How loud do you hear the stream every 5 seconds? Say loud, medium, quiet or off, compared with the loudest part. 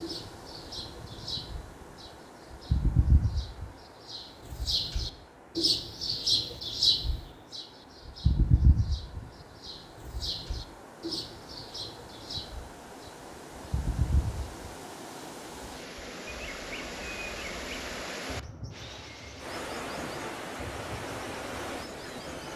medium, quiet, medium, loud, loud.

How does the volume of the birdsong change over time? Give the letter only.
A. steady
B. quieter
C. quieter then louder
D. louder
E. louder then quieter
E.